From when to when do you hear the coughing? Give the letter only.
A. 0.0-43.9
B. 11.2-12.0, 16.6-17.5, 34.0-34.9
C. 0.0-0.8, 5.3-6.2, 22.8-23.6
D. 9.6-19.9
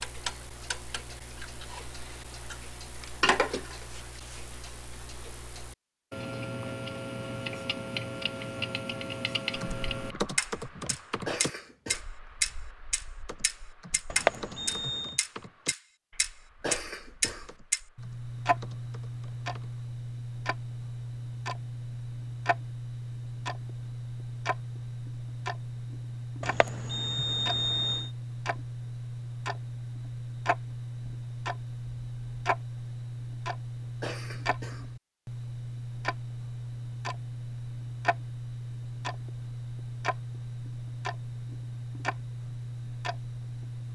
B.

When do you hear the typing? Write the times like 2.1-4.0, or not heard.
9.6-19.9.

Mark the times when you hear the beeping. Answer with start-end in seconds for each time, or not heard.
14.1-15.2, 26.4-28.1.